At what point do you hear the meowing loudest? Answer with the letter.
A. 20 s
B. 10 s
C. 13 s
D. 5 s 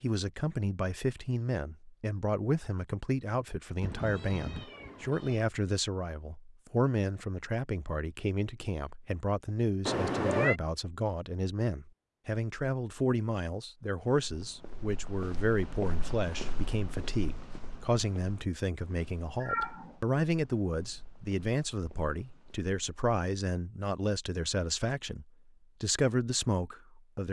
B.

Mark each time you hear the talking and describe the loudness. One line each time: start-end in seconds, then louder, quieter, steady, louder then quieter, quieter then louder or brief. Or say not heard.
0.0-27.2 steady.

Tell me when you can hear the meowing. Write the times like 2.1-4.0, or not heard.
3.8-5.5, 9.8-10.6, 19.4-19.9.